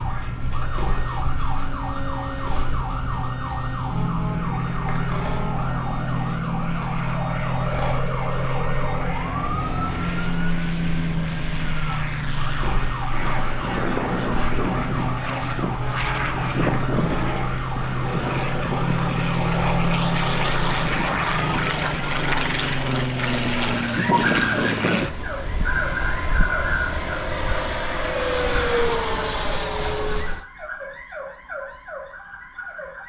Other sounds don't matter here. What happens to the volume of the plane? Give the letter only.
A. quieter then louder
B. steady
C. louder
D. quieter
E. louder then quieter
C.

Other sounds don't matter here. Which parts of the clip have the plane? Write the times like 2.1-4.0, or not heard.
0.2-30.4.